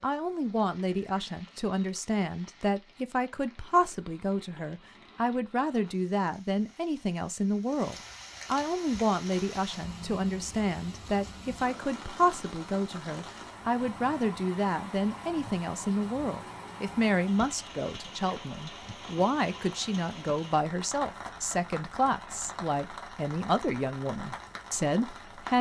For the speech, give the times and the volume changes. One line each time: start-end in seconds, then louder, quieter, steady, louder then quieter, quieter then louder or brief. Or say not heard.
0.0-25.5 steady.